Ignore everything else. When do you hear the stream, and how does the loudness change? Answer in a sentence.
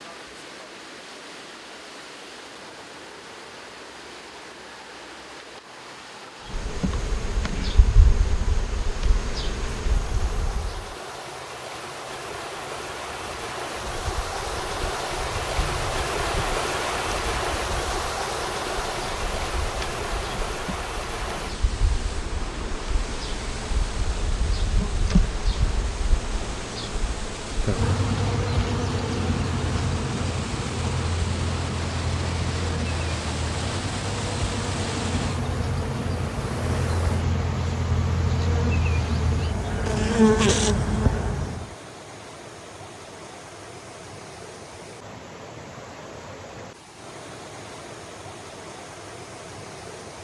The stream can be heard from 0.0 to 50.1 s, getting louder then quieter.